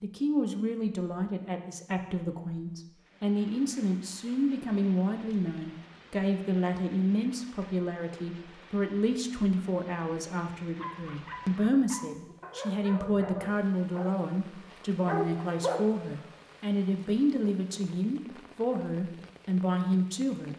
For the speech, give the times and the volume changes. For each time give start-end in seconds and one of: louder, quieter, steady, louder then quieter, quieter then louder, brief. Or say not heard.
0.0-20.5 steady.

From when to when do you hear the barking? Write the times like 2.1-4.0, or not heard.
10.8-16.4.